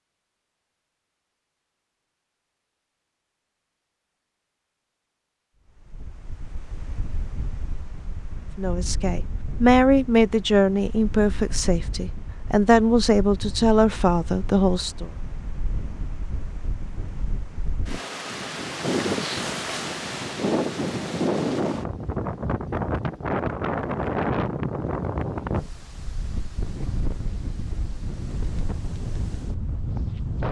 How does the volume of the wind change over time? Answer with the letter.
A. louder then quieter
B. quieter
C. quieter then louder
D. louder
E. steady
A.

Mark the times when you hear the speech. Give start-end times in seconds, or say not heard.
8.6-15.1.